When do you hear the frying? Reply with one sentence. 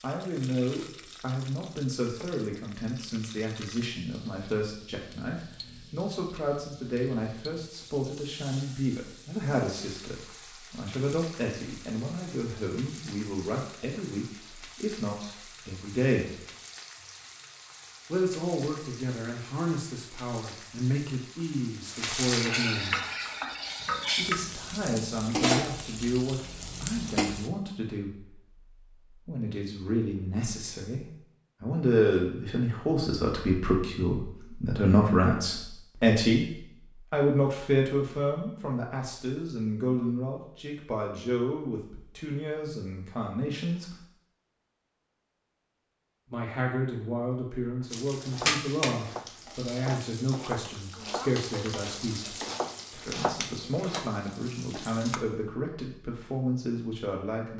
You can hear the frying from 0.0 to 27.5 s and from 47.9 to 55.2 s.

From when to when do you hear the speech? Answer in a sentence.
You can hear the speech from 0.0 to 16.4 s, from 18.1 to 22.9 s, from 24.1 to 44.0 s and from 46.3 to 57.5 s.